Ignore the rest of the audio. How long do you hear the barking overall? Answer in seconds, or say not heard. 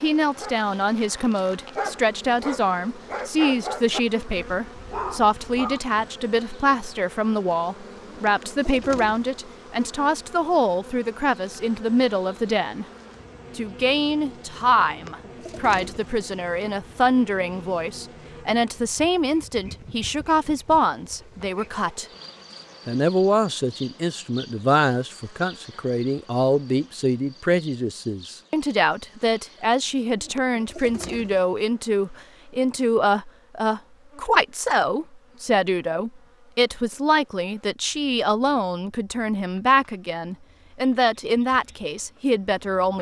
6 s.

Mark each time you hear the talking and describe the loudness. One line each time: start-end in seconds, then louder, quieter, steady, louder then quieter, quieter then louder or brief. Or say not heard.
0.0-12.8 steady
13.6-22.1 steady
22.9-42.9 steady.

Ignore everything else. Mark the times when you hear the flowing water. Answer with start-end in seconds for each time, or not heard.
not heard.